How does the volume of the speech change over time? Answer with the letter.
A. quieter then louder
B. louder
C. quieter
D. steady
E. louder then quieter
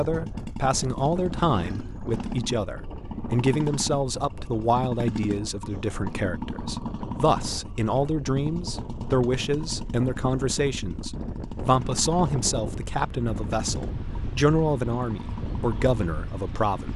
D.